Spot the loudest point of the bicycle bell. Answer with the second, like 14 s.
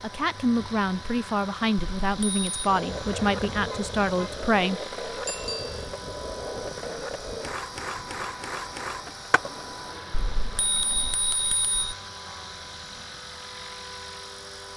11 s.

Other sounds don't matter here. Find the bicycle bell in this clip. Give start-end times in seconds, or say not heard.
1.8-2.5, 5.2-5.8, 10.1-11.8.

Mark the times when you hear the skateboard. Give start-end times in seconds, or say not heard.
2.6-11.2.